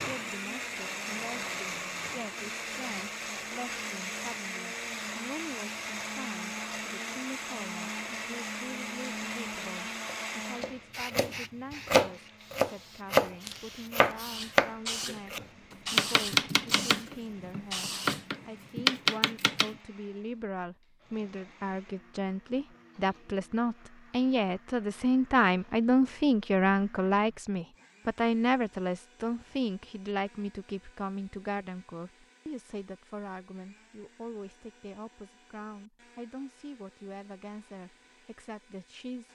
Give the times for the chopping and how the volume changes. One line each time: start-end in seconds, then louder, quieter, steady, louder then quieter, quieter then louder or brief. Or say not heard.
10.0-19.8 steady.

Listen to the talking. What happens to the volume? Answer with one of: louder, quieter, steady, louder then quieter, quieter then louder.
louder then quieter.